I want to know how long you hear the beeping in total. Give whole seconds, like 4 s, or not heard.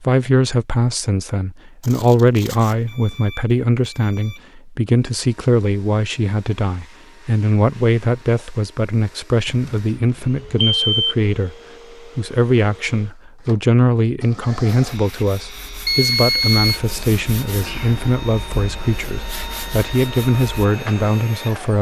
5 s.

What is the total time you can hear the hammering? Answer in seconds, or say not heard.
not heard.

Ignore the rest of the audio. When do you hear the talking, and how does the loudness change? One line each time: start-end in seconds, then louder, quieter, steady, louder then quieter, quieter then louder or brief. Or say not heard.
0.0-21.7 steady.